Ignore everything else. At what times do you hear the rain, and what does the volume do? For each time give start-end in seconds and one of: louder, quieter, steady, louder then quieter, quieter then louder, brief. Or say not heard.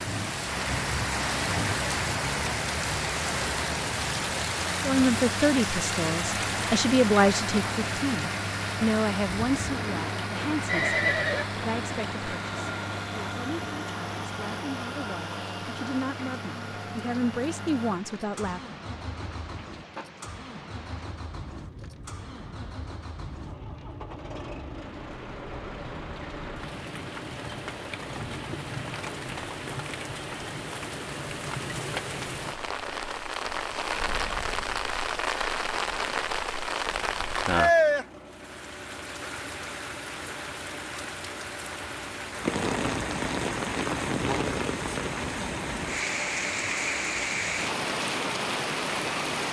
0.0-49.4 quieter then louder.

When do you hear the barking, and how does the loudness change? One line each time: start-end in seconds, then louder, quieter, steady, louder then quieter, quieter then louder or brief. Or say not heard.
not heard.